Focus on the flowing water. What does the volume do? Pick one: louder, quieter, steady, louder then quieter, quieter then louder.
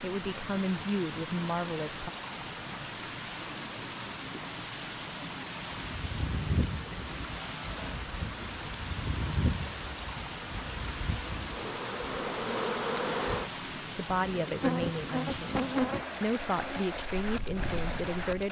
steady.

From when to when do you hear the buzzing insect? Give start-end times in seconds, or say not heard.
5.7-18.4.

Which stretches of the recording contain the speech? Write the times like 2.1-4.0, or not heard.
0.0-2.1, 13.8-18.4.